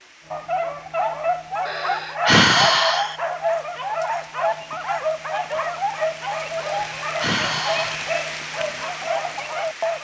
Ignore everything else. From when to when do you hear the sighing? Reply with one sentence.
You can hear the sighing from 1.6 to 3.1 s and from 6.6 to 8.1 s.